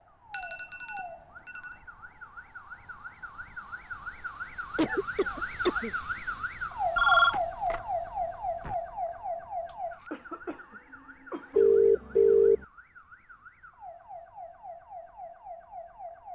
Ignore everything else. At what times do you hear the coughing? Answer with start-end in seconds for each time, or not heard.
4.8-5.9, 10.0-11.7.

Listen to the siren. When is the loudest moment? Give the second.
7 s.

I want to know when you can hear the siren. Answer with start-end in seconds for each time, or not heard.
0.0-16.3.